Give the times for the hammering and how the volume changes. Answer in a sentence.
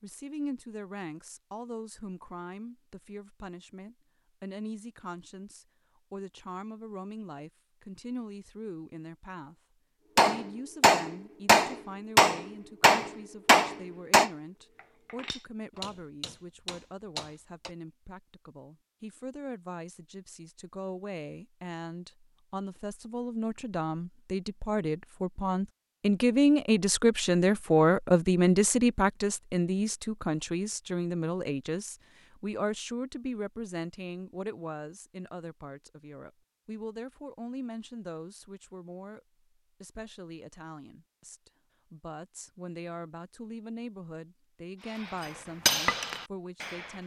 You can hear the hammering from 10.2 to 17.7 s, getting quieter; and briefly from 44.9 to 47.0 s.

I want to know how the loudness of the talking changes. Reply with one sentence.
The loudness of the talking goes up, then down.